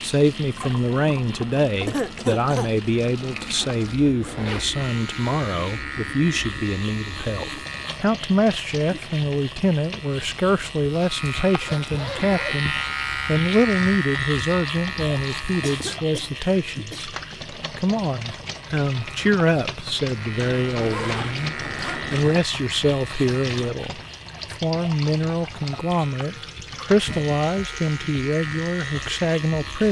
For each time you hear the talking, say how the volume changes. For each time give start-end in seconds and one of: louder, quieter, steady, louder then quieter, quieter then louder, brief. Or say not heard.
0.0-17.1 steady
17.8-29.8 steady.